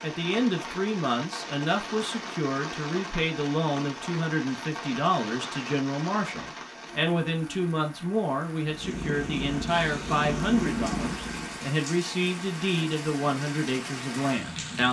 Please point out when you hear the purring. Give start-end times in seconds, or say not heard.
8.6-11.7.